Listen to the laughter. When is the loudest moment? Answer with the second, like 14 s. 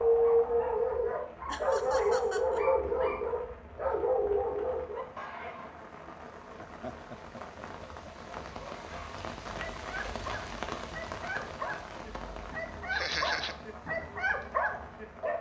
13 s.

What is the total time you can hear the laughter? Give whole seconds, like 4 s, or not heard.
3 s.